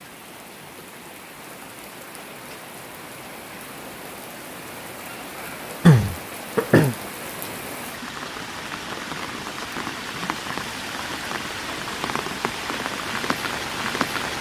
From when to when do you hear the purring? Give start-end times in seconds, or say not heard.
not heard.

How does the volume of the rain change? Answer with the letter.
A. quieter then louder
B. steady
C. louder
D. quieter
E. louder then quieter
C.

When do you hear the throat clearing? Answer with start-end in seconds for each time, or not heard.
5.8-7.0.